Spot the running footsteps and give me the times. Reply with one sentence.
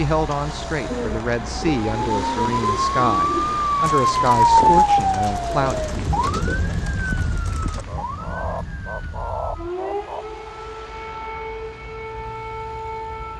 You can't hear the running footsteps here.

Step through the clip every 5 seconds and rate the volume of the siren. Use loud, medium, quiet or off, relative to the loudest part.
loud, medium, quiet.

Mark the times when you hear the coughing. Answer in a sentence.
You can't hear the coughing here.